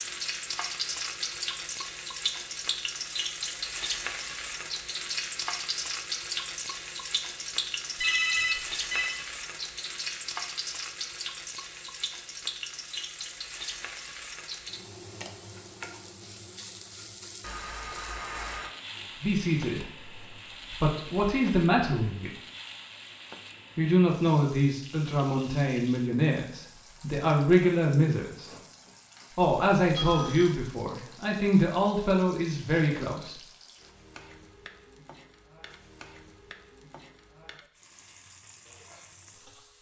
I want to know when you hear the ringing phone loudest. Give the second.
8 s.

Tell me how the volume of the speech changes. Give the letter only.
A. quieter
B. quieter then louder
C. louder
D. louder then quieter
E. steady
E.